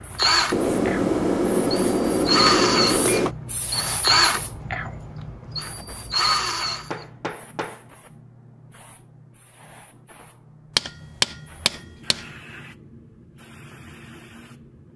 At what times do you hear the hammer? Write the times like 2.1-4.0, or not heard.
0.5-3.4, 6.9-7.8, 10.8-12.2.